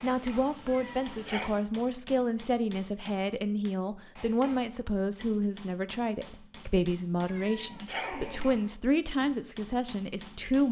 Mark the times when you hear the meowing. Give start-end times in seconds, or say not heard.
0.7-1.6, 7.2-8.6.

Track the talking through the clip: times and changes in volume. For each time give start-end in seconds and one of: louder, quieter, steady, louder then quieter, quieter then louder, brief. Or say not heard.
0.0-10.6 steady.